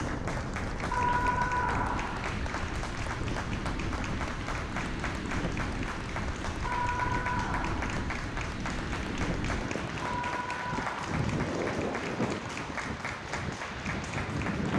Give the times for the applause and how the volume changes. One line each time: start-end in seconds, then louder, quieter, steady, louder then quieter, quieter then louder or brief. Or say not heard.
0.0-14.7 steady.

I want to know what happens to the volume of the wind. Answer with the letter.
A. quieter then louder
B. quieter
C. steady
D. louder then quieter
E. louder
C.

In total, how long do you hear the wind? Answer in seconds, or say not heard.
15 s.